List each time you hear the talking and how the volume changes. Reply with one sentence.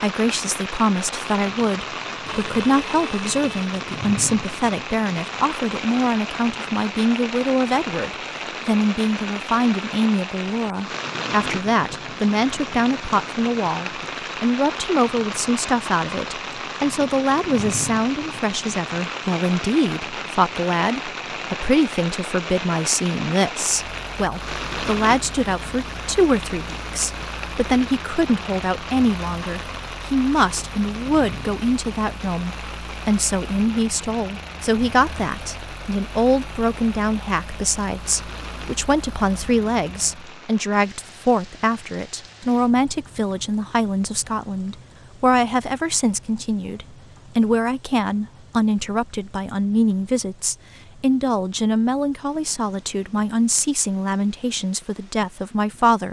The talking can be heard from 0.0 to 56.0 s, at a steady volume.